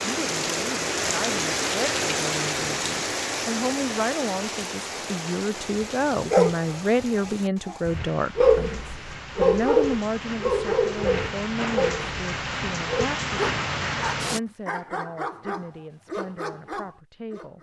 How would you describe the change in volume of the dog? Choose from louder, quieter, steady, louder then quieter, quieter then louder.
quieter.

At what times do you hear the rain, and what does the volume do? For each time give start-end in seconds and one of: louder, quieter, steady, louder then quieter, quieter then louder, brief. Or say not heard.
0.0-14.4 quieter then louder.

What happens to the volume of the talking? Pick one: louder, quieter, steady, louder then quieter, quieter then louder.
louder then quieter.